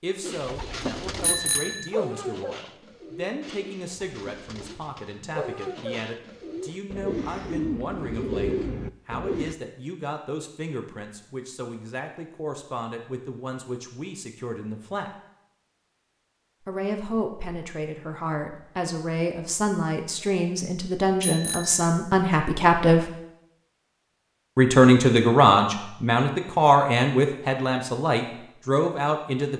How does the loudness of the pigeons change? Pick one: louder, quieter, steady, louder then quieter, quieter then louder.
quieter then louder.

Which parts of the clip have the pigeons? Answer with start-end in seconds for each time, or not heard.
0.2-9.6.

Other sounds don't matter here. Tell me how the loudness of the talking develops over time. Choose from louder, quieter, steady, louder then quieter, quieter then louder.
louder.